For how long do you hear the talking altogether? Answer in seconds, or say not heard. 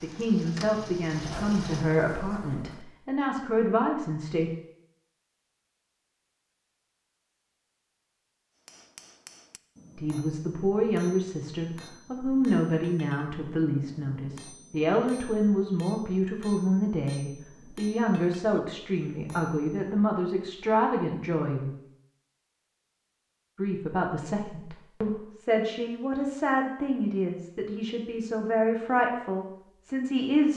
23 s.